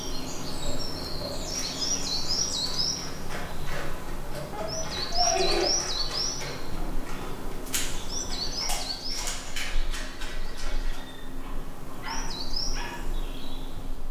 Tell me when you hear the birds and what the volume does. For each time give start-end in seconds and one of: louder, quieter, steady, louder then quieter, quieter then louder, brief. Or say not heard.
0.0-14.0 quieter.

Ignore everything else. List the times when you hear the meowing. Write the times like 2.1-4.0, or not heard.
4.5-5.7.